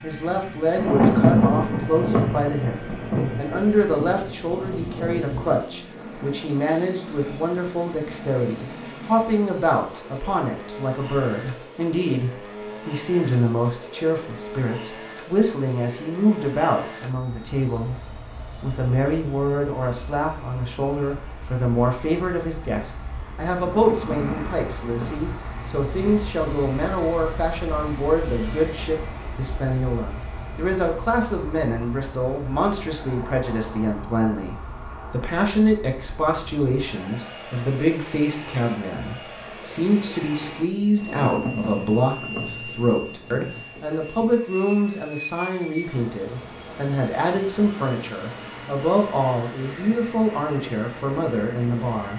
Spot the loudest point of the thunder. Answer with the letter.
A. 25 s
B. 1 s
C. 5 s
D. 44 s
B.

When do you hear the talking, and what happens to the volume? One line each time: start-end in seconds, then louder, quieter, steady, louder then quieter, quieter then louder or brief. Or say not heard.
0.0-52.1 steady.